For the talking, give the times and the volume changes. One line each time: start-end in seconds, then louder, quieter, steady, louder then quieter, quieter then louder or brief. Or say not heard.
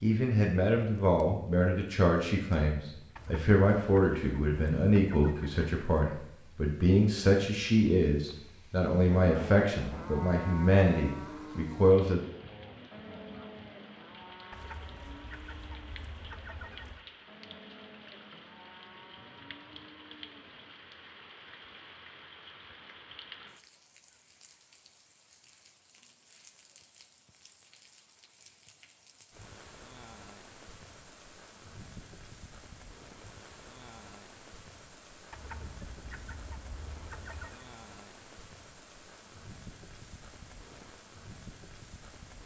0.0-12.2 steady.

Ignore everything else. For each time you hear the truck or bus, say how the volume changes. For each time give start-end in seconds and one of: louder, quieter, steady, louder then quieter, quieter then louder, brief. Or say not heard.
not heard.